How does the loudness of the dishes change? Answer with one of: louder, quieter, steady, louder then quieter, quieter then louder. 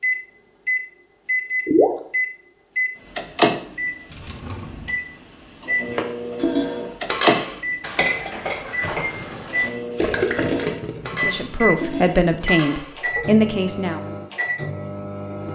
quieter.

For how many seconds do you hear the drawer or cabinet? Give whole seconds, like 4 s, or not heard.
2 s.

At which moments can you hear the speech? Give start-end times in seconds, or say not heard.
11.1-14.0.